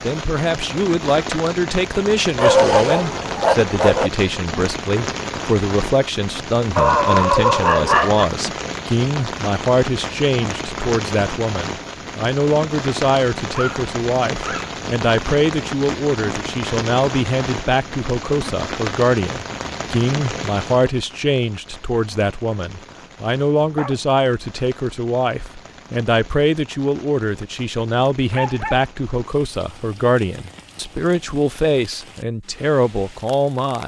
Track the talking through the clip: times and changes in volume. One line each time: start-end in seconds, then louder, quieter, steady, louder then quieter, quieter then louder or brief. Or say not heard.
0.0-33.8 steady.